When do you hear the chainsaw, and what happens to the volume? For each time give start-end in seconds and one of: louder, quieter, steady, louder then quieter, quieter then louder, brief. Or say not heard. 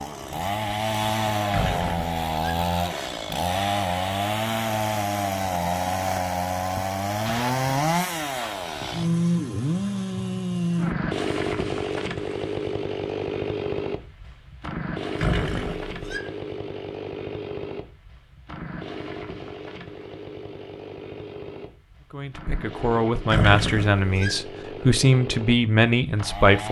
0.0-26.6 quieter.